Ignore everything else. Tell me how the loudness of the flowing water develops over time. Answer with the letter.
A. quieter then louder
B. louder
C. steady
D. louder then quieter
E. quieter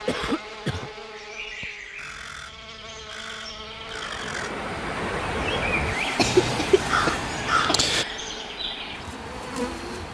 E.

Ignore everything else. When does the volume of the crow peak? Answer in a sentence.
The loudest moment of the crow is at 8 seconds.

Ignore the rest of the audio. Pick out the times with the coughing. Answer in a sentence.
The coughing can be heard from 0.1 to 0.9 s and from 6.2 to 7.8 s.